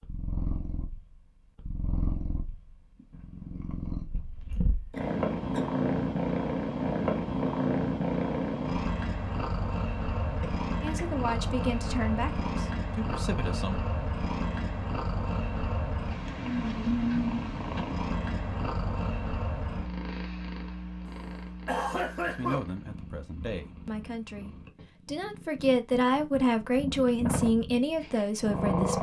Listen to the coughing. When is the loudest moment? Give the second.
22 s.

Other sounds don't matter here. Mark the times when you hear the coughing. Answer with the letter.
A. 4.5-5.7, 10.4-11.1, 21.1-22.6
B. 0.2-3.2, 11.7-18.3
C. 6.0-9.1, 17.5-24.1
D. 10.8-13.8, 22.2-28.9
A.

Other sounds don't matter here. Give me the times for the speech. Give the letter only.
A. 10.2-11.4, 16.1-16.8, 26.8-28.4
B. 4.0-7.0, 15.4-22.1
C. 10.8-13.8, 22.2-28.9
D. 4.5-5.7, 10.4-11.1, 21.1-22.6
C.